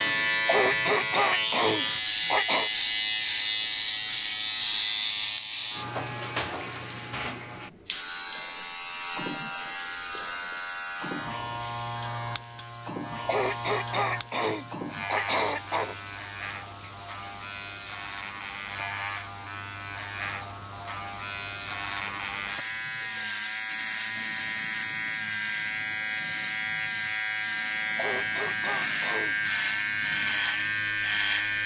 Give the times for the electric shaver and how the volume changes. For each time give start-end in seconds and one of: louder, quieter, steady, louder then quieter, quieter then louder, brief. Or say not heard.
0.0-31.6 quieter then louder.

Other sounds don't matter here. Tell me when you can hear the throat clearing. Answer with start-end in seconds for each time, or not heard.
0.5-2.7, 13.2-15.9, 27.9-29.4.